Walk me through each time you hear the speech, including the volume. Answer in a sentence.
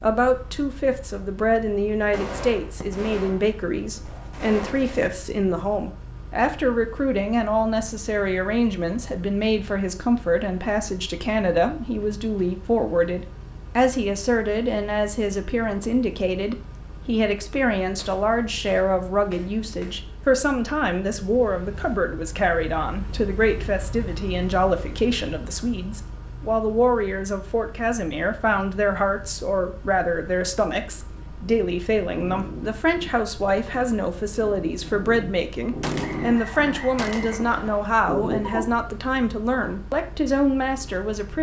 The speech can be heard from 0.0 to 41.3 s, at a steady volume.